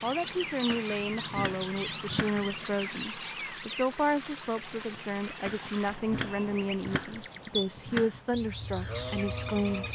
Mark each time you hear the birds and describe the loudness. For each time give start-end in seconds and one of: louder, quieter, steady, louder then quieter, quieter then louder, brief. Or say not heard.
0.0-9.9 quieter then louder.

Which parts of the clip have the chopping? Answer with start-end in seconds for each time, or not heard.
0.7-2.5, 5.5-8.2.